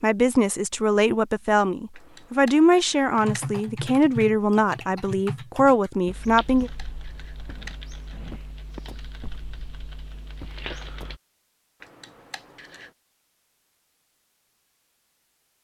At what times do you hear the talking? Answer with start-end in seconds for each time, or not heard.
0.0-6.7.